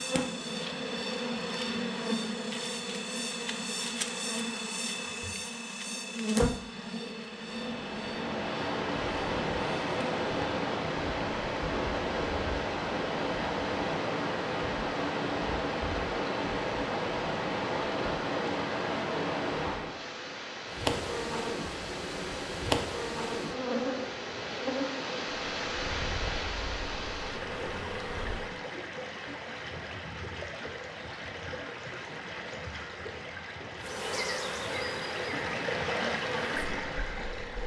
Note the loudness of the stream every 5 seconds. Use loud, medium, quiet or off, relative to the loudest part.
off, loud, loud, loud, medium, medium, medium, loud.